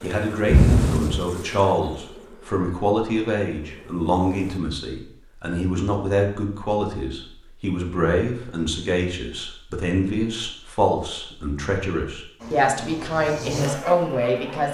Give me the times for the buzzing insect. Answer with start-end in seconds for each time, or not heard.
0.0-4.6, 12.4-14.6.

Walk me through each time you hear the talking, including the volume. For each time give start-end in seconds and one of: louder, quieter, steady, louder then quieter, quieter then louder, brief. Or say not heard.
0.0-14.6 steady.